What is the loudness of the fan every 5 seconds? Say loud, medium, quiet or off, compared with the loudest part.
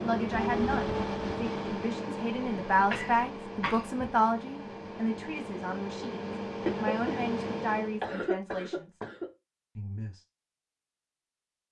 loud, loud, off.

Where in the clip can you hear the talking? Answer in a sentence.
You can hear the talking from 0.0 to 8.9 s and from 9.8 to 10.2 s.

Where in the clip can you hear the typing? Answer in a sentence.
You can't hear the typing here.